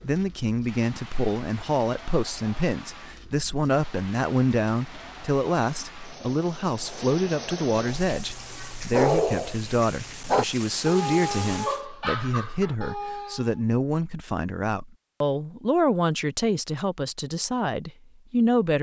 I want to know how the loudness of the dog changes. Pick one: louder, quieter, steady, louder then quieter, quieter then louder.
quieter.